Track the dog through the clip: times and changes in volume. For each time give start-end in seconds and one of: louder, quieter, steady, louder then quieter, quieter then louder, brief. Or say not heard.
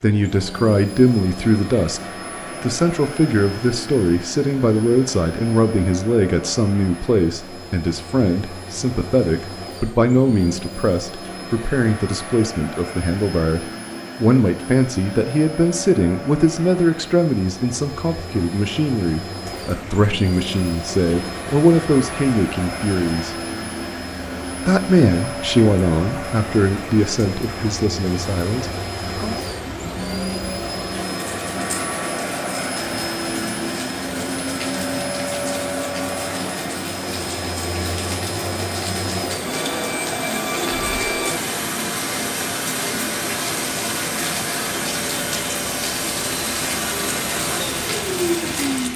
not heard.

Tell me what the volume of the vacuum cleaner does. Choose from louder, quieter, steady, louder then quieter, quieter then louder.
louder.